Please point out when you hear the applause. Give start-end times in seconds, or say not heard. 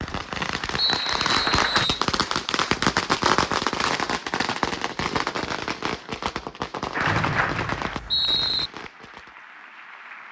0.0-1.9, 6.9-10.2.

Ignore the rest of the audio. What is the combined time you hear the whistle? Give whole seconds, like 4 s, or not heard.
3 s.